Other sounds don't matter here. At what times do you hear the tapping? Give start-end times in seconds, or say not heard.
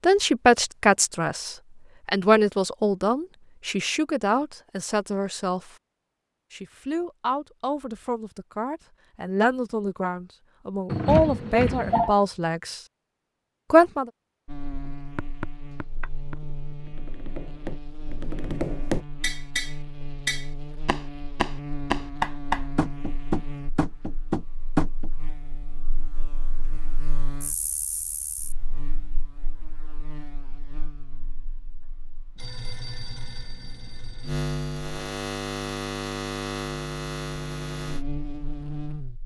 14.8-25.1.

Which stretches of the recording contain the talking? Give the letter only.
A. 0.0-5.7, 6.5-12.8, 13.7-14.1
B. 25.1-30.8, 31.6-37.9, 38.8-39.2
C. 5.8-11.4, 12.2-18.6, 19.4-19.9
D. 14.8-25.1
A.